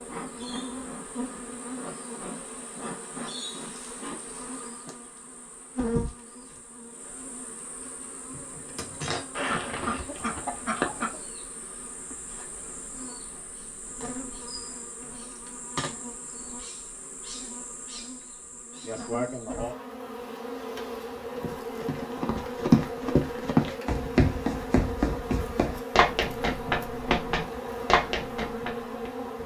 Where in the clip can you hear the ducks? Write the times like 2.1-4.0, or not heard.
9.3-11.2.